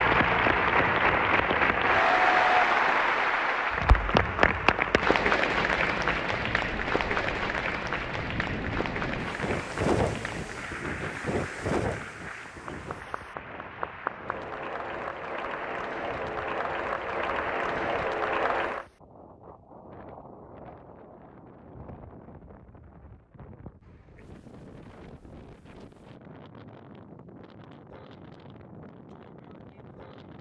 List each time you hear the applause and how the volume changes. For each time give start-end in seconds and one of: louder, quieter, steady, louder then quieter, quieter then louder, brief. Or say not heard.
0.0-18.9 quieter then louder.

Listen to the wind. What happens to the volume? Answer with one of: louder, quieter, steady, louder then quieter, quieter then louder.
quieter.